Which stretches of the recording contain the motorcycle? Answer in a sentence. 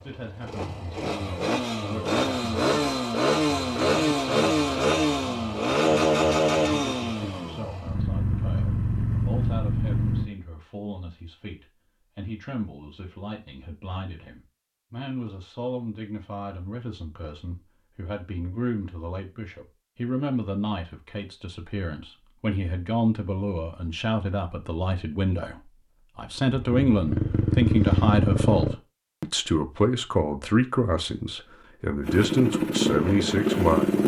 The motorcycle can be heard from 0.0 to 10.3 s, from 26.6 to 28.8 s and from 32.0 to 34.0 s.